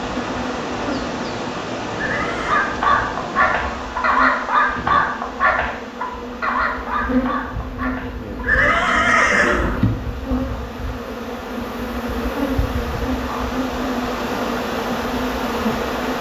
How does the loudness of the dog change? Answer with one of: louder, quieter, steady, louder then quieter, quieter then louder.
quieter.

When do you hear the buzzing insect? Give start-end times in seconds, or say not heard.
0.0-16.1.